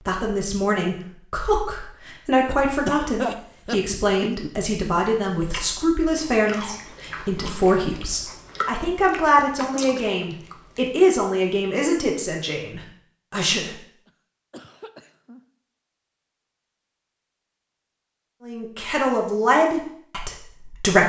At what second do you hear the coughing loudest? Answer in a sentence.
The loudest moment of the coughing is at 3 seconds.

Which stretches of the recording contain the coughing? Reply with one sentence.
You can hear the coughing from 2.5 to 4.5 s, from 9.6 to 10.2 s and from 14.1 to 15.4 s.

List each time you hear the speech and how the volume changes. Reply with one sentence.
The speech can be heard from 0.1 to 13.8 s, at a steady volume; and briefly from 18.4 to 21.0 s.